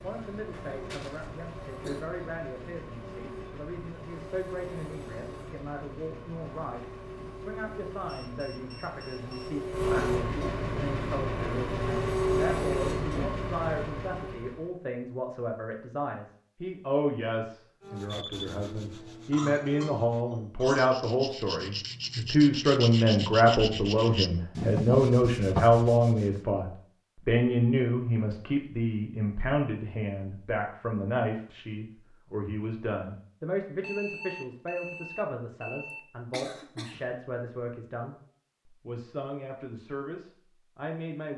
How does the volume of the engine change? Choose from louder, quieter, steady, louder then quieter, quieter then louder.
louder.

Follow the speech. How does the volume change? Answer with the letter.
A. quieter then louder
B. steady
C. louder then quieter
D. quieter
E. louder
C.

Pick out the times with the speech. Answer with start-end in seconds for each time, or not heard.
0.0-41.3.